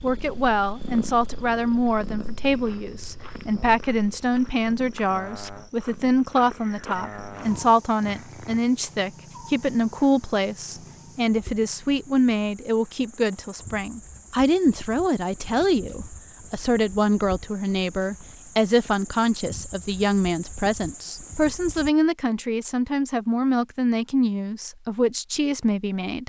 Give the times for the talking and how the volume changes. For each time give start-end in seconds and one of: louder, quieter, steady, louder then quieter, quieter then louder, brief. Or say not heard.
0.0-26.2 steady.